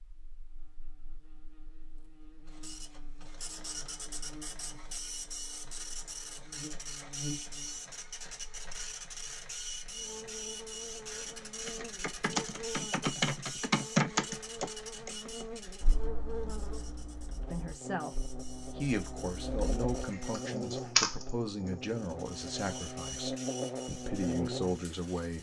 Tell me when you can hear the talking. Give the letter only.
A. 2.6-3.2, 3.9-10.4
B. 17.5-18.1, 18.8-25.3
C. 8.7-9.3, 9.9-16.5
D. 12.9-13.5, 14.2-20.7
B.